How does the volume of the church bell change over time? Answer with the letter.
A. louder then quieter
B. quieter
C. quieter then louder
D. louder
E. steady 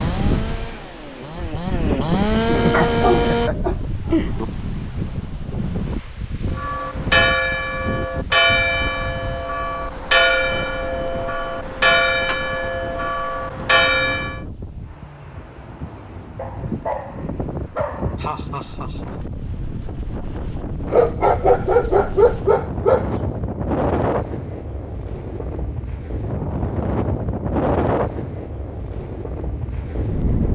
E.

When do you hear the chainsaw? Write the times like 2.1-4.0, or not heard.
0.0-3.5.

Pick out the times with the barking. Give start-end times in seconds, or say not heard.
2.7-4.5, 16.4-18.2, 20.9-23.1.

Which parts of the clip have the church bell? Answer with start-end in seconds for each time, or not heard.
6.5-14.4.